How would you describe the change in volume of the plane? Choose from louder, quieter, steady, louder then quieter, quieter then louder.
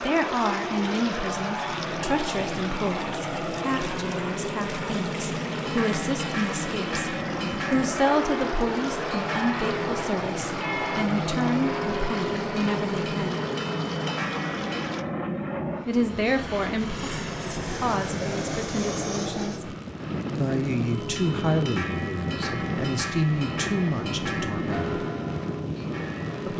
steady.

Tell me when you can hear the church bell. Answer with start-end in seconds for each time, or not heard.
5.6-14.9, 20.9-26.5.